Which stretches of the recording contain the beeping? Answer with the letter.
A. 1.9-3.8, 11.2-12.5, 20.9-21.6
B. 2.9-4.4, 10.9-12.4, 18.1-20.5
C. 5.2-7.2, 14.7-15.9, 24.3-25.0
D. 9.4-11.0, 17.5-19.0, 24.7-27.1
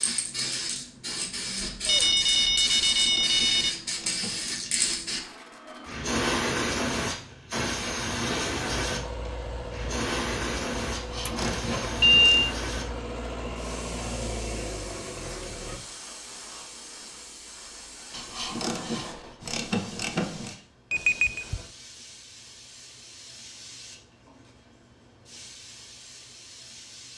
A.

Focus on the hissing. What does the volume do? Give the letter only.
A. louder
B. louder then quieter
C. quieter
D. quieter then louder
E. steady
C.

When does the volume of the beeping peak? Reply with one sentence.
The loudest moment of the beeping is at 12 seconds.